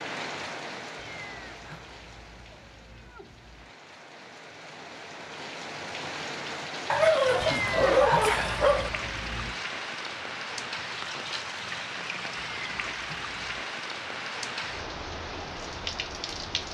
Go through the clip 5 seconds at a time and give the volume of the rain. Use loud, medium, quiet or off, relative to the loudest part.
medium, loud, loud, loud.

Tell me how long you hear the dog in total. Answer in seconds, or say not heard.
2 s.